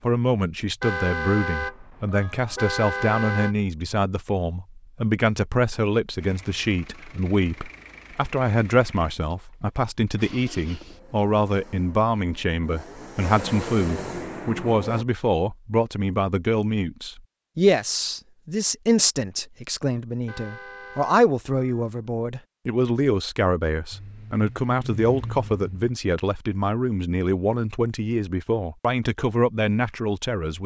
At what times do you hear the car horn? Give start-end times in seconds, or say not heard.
0.8-3.5, 20.2-21.9.